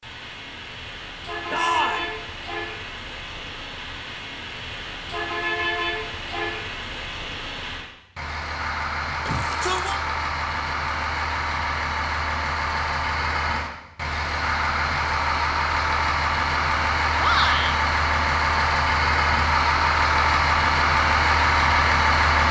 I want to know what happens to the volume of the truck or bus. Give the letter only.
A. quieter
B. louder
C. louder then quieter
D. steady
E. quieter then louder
B.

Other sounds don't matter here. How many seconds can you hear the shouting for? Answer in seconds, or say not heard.
2 s.